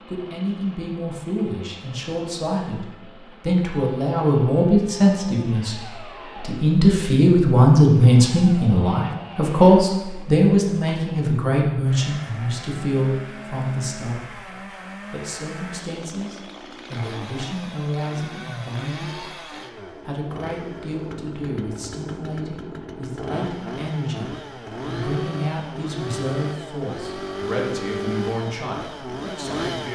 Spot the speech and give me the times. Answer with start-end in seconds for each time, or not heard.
0.1-19.4, 20.1-29.8.